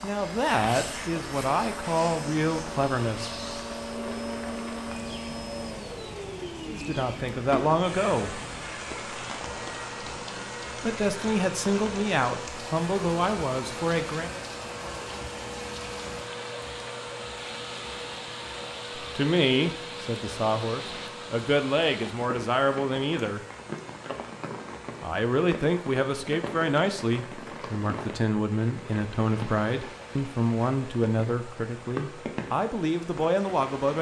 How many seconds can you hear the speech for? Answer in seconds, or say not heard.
22 s.